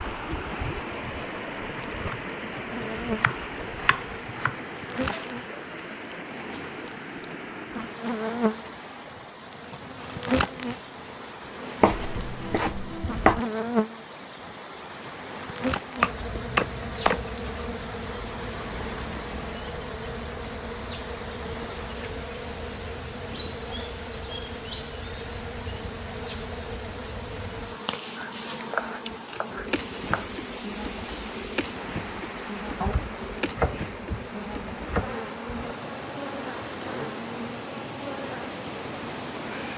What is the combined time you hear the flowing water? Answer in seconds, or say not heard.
40 s.